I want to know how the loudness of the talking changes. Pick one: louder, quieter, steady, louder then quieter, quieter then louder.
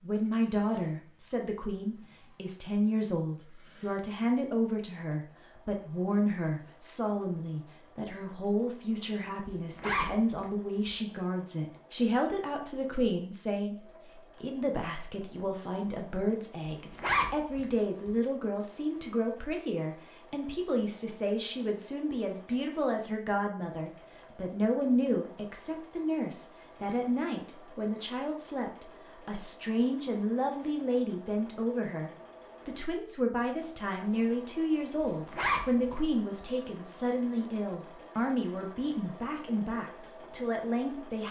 steady.